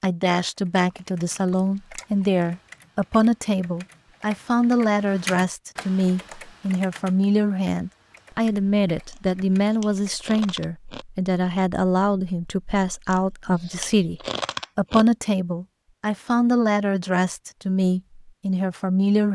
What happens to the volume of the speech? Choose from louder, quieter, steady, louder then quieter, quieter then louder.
steady.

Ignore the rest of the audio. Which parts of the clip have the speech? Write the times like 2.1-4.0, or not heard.
0.0-19.2.